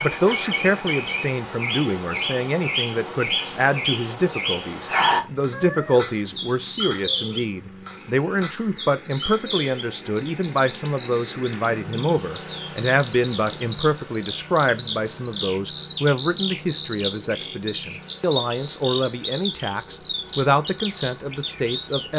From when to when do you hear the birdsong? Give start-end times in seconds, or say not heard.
0.0-22.1.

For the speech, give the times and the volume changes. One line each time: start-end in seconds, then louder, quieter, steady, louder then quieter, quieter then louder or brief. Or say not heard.
0.0-22.1 steady.